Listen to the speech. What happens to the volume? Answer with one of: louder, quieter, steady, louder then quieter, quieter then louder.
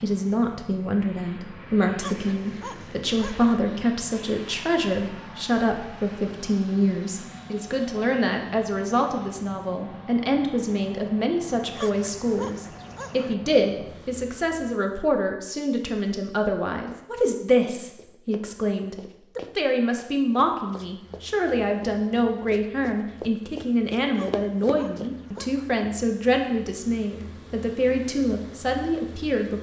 steady.